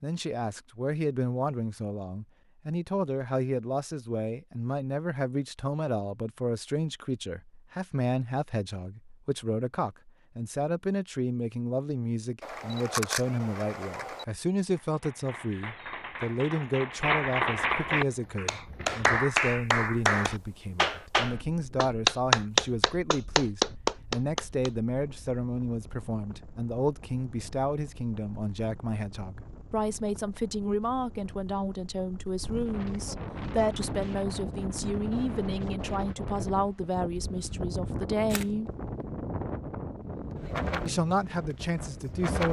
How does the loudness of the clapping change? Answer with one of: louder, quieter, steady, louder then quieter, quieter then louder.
louder.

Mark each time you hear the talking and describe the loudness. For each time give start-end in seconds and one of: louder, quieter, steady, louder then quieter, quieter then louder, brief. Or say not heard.
0.0-38.7 steady
40.9-42.4 brief.